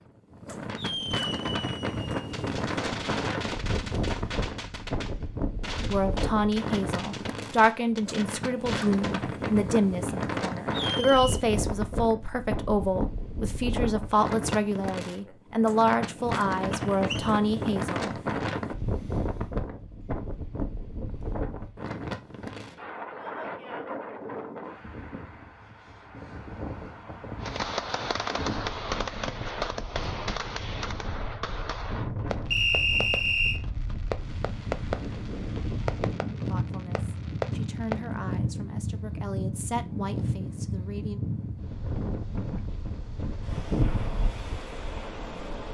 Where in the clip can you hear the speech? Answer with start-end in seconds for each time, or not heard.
5.9-18.1, 36.5-41.2.